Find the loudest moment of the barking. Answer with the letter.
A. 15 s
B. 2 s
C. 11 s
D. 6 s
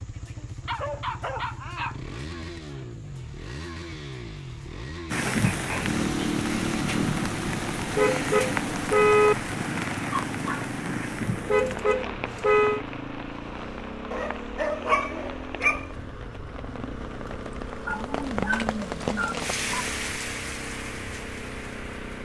A.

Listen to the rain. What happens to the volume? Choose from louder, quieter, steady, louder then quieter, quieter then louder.
quieter then louder.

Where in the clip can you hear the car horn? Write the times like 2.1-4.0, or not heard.
8.0-9.3, 11.4-12.8.